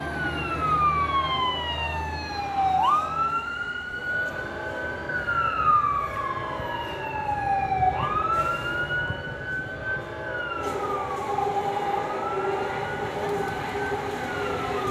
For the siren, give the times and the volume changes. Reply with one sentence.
The siren can be heard from 0.0 to 14.7 s, getting quieter.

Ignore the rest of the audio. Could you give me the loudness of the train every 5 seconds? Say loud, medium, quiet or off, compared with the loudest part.
quiet, quiet, loud.